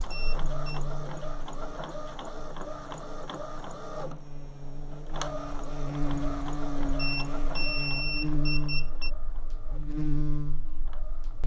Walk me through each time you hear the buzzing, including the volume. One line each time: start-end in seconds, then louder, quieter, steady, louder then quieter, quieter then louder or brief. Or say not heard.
0.0-11.4 quieter then louder.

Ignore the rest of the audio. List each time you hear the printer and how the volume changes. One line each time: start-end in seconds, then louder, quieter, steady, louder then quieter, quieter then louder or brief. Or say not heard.
0.0-11.4 quieter.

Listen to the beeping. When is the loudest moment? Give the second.
8 s.